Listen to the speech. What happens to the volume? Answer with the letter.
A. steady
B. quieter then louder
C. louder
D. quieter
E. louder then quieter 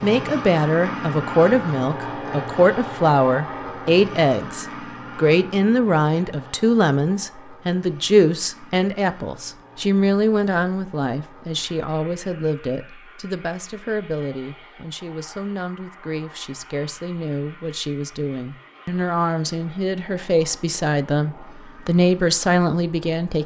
B.